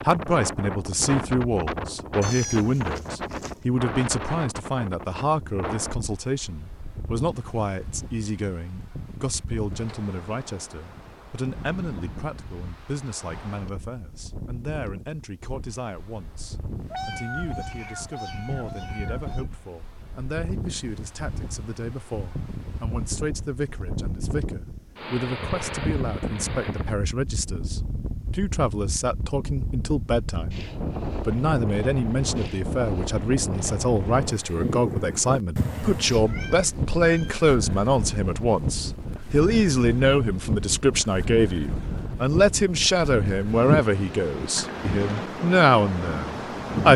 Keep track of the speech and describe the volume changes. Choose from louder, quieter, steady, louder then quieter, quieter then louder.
quieter then louder.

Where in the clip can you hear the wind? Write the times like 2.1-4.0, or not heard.
0.0-46.9.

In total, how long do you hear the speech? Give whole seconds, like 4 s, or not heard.
47 s.